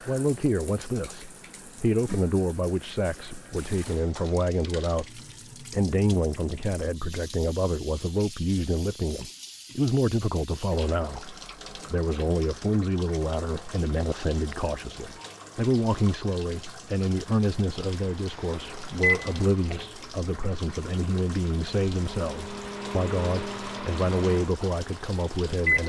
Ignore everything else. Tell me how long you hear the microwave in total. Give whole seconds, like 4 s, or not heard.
8 s.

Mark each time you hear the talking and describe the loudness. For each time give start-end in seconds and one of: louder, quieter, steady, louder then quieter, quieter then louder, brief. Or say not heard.
0.1-25.8 steady.